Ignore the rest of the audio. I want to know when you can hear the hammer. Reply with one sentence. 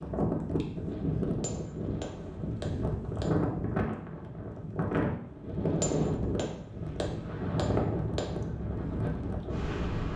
You can hear the hammer from 1.4 to 3.4 s and from 5.8 to 8.4 s.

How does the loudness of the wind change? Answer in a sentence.
The loudness of the wind stays about the same.